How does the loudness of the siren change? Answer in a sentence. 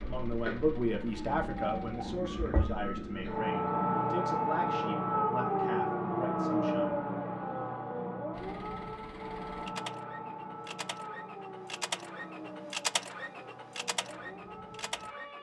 The loudness of the siren goes up, then down.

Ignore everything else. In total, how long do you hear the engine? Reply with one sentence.
The engine can be heard for 9 seconds in total.